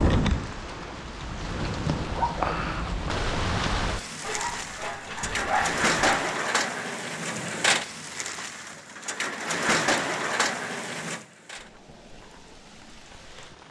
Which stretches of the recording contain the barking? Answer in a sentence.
You can hear the barking from 4.2 to 6.2 s.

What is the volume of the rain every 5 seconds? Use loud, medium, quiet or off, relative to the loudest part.
loud, loud, medium.